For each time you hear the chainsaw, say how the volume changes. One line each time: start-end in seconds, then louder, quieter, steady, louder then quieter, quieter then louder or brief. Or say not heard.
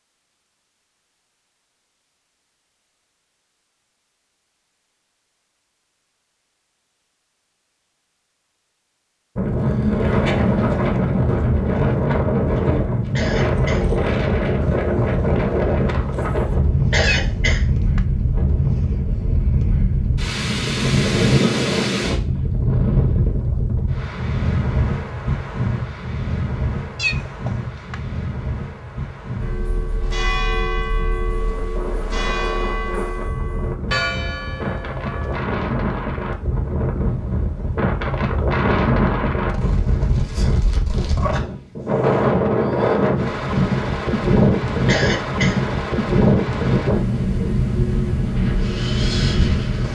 not heard.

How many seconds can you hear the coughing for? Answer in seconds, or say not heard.
2 s.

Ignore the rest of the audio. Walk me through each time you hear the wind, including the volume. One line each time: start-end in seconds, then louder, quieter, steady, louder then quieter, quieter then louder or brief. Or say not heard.
9.3-49.8 quieter then louder.